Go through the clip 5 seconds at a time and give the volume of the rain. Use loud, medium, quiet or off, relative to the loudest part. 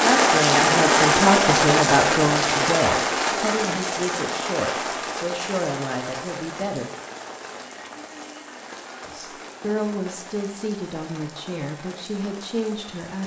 loud, quiet, quiet.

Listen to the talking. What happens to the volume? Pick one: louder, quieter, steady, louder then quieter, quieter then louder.
quieter.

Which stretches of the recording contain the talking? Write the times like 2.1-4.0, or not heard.
0.0-6.9, 9.0-13.2.